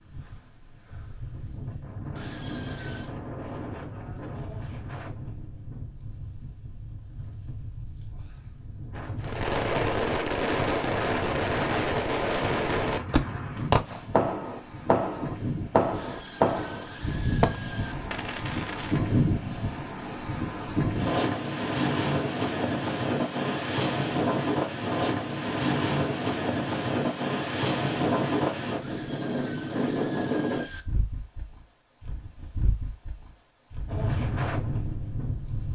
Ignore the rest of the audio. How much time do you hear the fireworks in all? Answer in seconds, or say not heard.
10 s.